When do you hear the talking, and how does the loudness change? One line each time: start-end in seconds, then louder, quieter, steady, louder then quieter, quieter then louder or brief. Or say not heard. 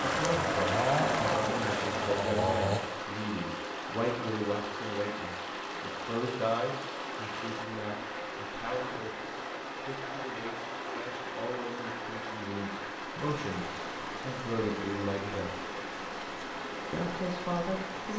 0.0-15.7 quieter then louder
16.9-18.1 brief.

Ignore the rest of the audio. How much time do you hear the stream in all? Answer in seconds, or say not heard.
18 s.